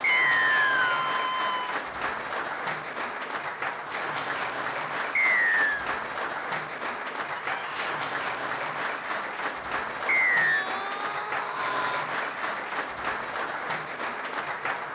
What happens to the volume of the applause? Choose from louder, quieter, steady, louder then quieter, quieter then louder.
steady.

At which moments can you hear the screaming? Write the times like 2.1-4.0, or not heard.
0.1-1.8, 7.4-8.0, 10.4-12.1.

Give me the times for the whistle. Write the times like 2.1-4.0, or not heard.
0.0-0.9, 5.2-5.8, 10.1-10.7.